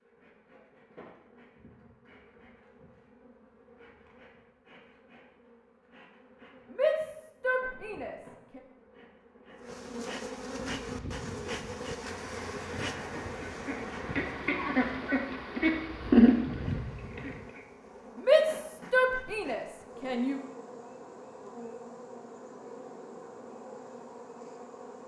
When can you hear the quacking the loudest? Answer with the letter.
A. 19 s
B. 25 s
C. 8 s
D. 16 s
D.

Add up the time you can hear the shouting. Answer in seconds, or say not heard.
4 s.